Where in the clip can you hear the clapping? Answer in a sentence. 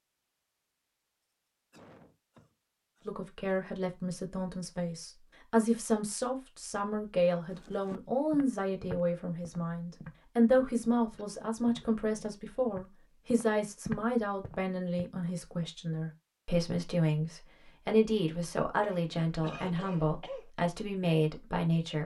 You can't hear the clapping here.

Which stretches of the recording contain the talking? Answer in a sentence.
You can hear the talking from 3.0 to 21.9 s.